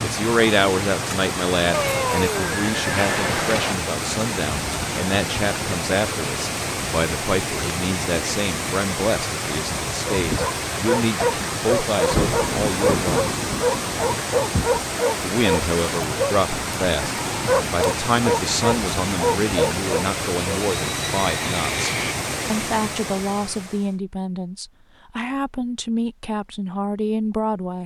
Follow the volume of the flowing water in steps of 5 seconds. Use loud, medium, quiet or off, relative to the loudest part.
loud, loud, loud, loud, loud, off.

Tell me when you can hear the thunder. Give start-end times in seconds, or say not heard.
12.1-14.6.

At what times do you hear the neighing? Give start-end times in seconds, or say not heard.
1.7-3.8, 20.8-22.1.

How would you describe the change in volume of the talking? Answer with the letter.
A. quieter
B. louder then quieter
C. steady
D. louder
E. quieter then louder
C.